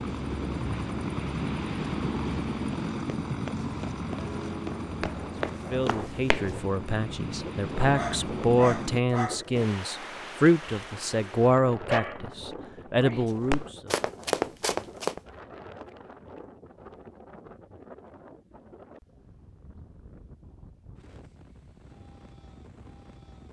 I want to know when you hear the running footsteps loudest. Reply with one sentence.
The volume of the running footsteps peaks at 14 seconds.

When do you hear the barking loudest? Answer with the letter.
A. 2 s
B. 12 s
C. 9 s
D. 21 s
B.